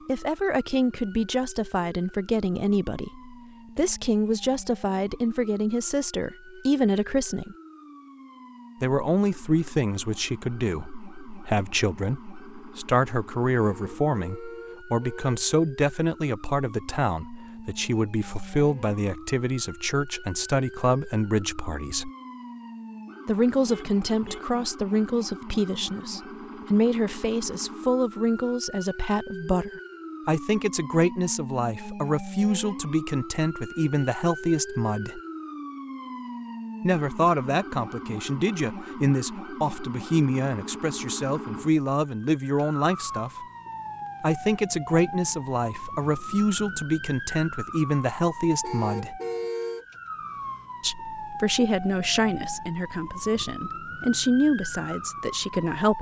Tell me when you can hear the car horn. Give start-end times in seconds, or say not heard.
13.6-15.3, 23.6-24.6, 48.6-49.9.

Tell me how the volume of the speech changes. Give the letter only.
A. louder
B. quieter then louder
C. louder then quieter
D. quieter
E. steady
E.